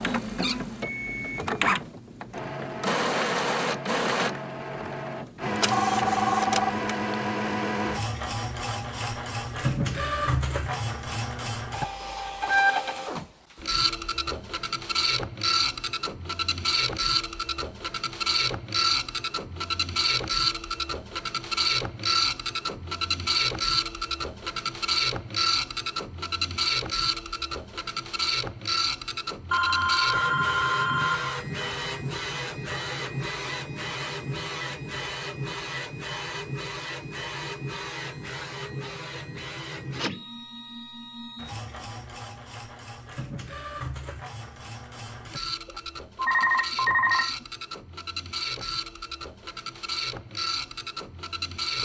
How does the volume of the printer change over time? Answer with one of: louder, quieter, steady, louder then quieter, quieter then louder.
quieter.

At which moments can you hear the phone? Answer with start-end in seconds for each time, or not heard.
5.5-7.2, 29.5-31.4, 45.6-47.5.